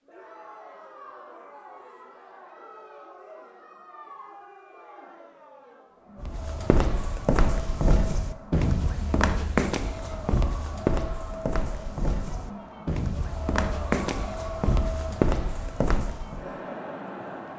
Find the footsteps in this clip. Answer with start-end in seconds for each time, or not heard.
6.2-16.4.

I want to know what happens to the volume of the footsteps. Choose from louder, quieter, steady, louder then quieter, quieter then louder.
steady.